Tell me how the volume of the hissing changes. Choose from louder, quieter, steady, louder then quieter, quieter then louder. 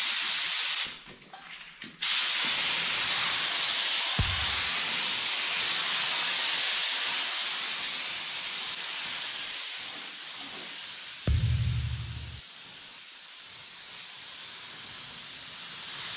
quieter.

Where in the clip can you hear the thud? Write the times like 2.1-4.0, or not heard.
4.2-4.6, 11.2-12.4.